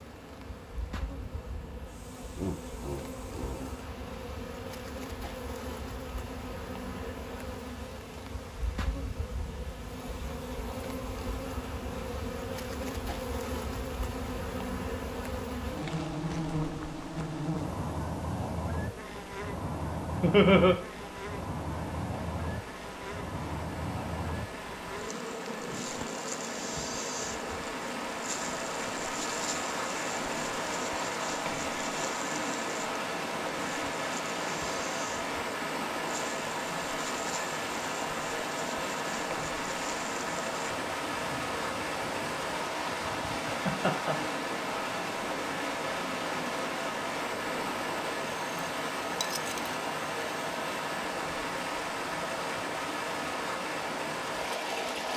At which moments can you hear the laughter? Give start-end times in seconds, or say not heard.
2.4-3.8, 20.2-20.8, 43.5-44.1.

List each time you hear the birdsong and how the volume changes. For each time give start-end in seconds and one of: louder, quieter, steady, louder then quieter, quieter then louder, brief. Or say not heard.
not heard.